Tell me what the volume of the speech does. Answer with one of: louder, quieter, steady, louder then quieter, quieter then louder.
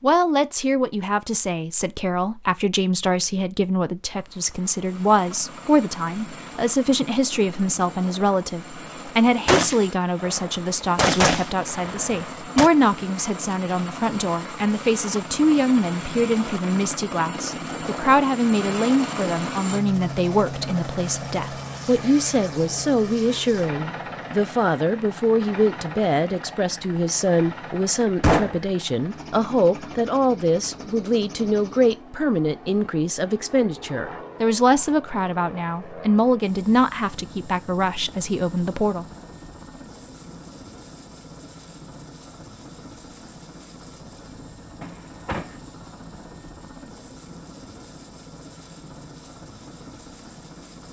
steady.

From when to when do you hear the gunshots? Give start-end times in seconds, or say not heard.
9.4-12.7, 28.2-28.6, 44.8-45.5.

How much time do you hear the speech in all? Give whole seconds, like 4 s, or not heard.
39 s.